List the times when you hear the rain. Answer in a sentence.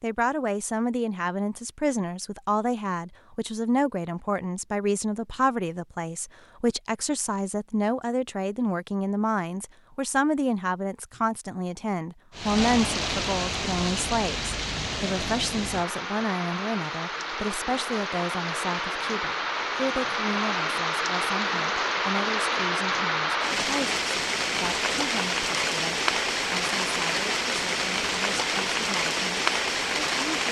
The rain can be heard from 12.3 to 30.4 s.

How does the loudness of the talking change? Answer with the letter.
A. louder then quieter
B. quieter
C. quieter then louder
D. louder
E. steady
B.